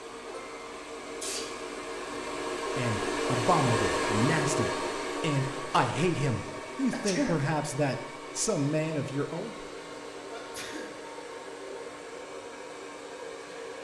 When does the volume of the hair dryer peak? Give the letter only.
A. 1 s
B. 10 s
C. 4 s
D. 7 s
C.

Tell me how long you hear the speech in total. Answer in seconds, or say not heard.
7 s.